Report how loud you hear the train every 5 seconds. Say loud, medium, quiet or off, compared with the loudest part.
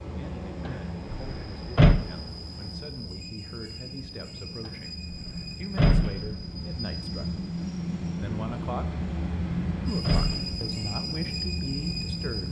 medium, loud, loud.